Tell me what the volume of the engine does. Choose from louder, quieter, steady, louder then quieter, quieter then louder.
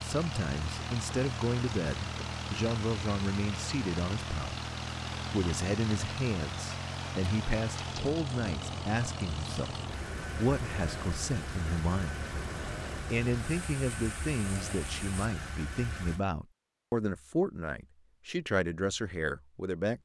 steady.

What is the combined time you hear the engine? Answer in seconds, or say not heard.
16 s.